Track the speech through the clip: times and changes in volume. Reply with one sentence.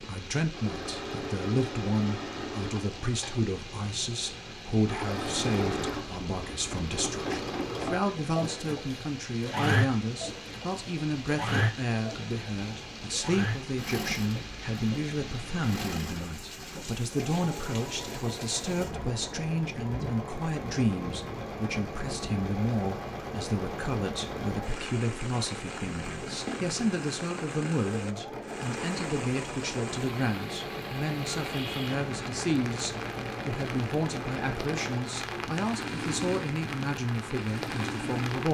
The speech can be heard from 0.0 to 38.4 s, at a steady volume.